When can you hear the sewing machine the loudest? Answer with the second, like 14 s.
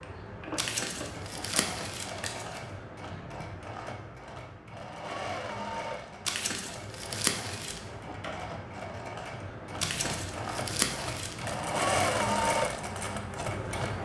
12 s.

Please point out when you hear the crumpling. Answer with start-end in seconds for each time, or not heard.
0.6-2.6, 6.2-7.8, 9.8-11.5.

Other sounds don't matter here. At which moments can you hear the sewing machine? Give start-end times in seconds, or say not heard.
0.0-14.0.